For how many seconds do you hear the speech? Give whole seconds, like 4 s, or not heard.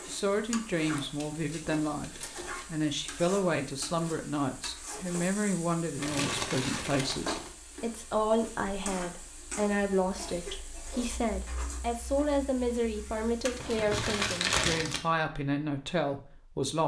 17 s.